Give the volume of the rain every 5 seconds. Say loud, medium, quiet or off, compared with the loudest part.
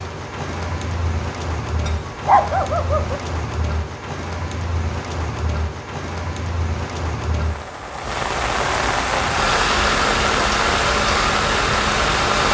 medium, loud, loud.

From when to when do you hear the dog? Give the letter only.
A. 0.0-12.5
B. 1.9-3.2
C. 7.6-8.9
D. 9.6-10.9
B.